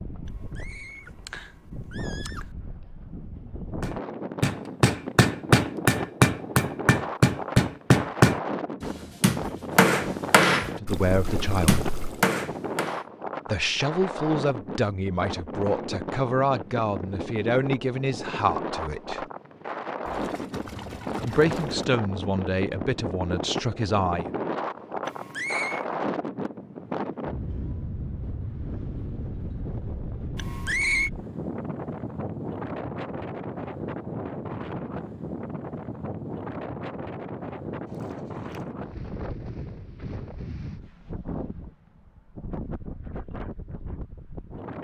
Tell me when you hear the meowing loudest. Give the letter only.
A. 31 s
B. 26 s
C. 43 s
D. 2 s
A.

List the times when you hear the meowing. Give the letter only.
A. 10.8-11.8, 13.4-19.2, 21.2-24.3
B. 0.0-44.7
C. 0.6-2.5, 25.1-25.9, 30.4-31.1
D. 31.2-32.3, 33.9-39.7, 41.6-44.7
C.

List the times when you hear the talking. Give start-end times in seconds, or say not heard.
10.8-11.8, 13.4-19.2, 21.2-24.3.